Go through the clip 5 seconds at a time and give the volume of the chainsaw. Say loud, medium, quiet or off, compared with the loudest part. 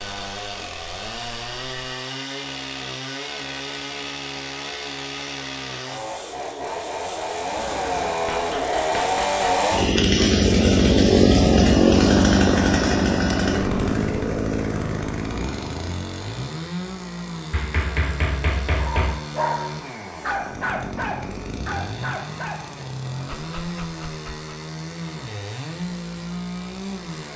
quiet, medium, loud, quiet, quiet, quiet.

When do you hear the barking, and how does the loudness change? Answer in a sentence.
The barking can be heard from 18.8 to 24.5 s, getting quieter.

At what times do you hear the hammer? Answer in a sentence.
You can hear the hammer from 7.5 to 9.6 s and from 17.5 to 19.2 s.